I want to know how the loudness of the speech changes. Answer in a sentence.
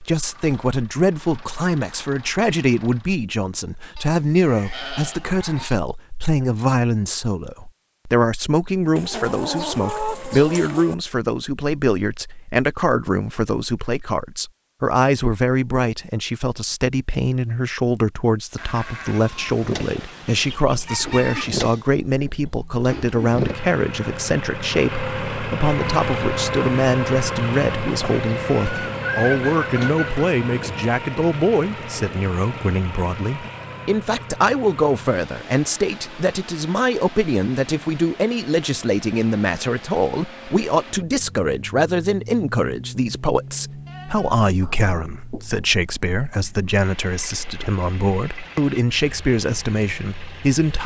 The volume of the speech stays about the same.